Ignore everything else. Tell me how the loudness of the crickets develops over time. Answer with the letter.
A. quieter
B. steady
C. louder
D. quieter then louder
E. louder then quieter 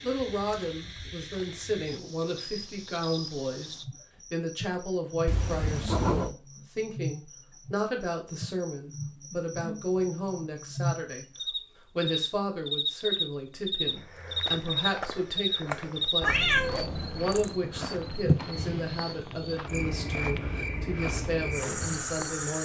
C.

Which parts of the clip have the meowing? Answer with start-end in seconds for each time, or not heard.
5.2-6.3, 16.2-17.6.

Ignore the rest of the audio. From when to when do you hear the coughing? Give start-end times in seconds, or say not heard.
not heard.